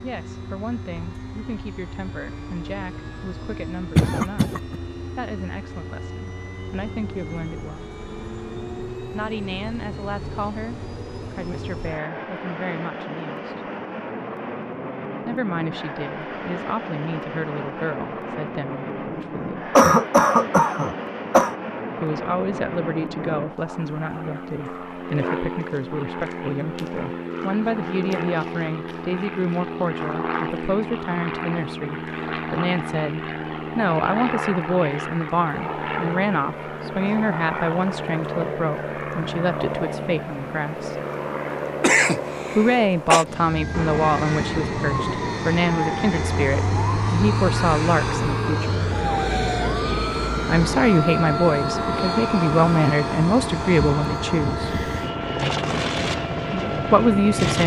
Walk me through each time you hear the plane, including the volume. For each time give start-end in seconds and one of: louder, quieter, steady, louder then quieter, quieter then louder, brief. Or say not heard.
0.0-57.6 louder.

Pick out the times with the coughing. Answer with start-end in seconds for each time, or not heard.
4.0-4.8, 19.8-21.6, 41.8-43.2.